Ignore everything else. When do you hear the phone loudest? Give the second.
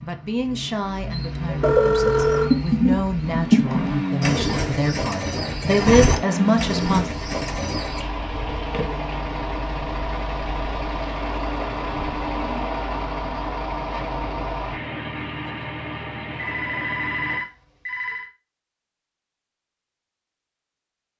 2 s.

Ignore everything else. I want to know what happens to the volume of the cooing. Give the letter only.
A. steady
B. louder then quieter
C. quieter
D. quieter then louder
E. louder
C.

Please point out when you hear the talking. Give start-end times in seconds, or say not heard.
0.0-7.0.